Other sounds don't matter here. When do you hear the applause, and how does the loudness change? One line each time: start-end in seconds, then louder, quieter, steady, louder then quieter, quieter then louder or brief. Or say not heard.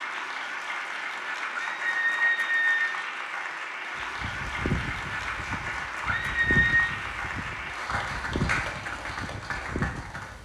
0.0-10.3 steady.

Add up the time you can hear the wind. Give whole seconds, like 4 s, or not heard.
6 s.